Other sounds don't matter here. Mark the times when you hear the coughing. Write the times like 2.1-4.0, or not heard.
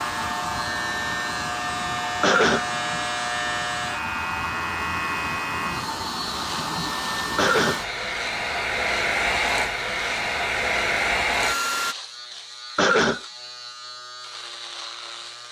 2.2-2.6, 7.3-7.8, 12.8-13.2.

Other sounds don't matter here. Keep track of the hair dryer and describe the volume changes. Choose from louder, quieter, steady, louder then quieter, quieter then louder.
louder.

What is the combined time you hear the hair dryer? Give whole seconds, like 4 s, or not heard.
12 s.